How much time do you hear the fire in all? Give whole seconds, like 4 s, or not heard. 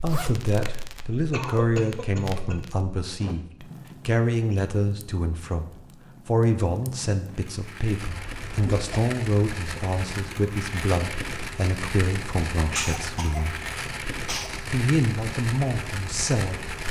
17 s.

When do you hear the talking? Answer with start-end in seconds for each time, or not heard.
0.0-13.6, 14.7-16.6.